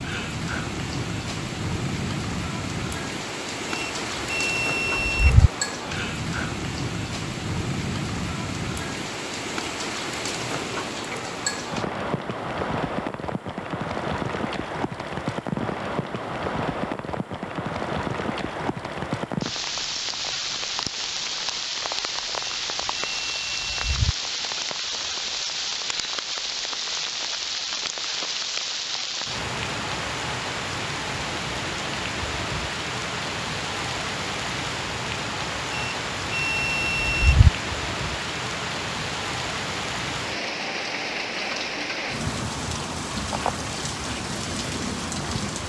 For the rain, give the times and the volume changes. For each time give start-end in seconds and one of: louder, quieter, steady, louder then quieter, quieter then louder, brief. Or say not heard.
0.0-45.6 steady.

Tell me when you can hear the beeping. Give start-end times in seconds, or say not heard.
3.7-5.5, 22.4-24.1, 35.7-37.5.